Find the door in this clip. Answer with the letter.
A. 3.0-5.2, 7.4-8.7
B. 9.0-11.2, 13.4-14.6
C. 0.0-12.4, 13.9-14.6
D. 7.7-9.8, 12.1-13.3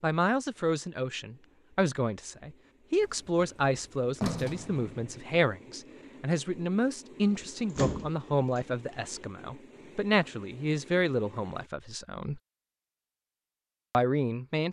A.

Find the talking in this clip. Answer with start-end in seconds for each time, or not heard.
0.0-12.4, 13.9-14.6.